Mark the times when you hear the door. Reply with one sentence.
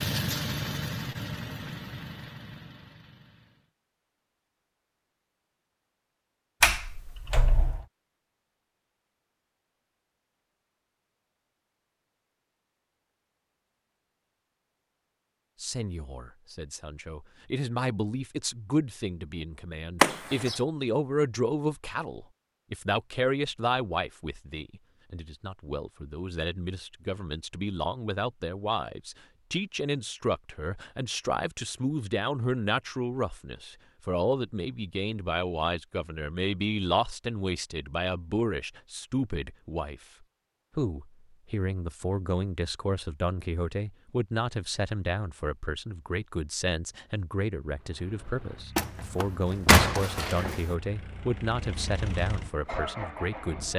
You can hear the door from 6.6 to 7.8 s, from 20.0 to 20.6 s and from 48.8 to 50.8 s.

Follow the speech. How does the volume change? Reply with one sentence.
The loudness of the speech stays about the same.